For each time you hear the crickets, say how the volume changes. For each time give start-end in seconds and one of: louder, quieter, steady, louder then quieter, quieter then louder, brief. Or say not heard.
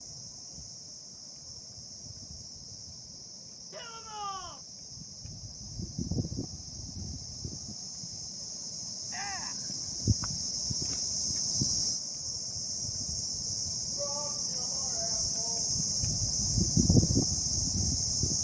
0.0-18.3 louder.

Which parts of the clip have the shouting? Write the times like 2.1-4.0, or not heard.
3.7-4.6, 9.1-9.6, 13.9-15.8.